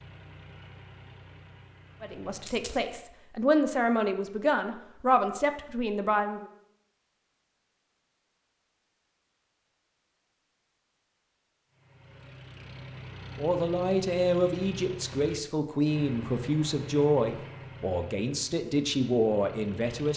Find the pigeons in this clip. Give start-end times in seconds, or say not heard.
not heard.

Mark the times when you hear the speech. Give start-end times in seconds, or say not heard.
2.0-6.5, 13.3-20.1.